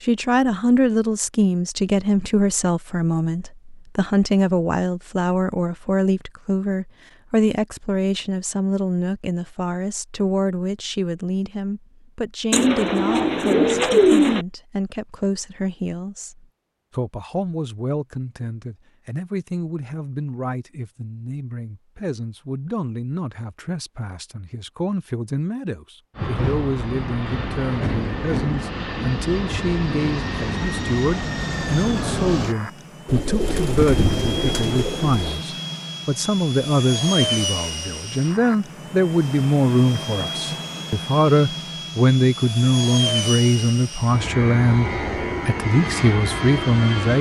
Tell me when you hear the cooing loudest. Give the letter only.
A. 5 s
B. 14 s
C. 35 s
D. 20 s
B.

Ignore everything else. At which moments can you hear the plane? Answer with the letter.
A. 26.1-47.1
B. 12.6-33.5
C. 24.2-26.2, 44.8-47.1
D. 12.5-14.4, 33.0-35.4
A.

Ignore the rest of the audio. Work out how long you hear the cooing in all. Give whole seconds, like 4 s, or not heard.
4 s.